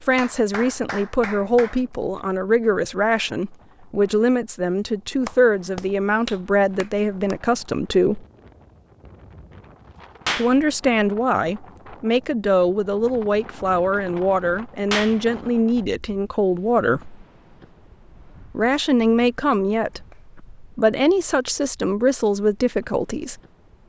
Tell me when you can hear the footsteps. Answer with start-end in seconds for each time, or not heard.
not heard.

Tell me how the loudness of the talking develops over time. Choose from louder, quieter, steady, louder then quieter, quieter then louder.
steady.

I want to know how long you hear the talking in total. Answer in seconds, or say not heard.
20 s.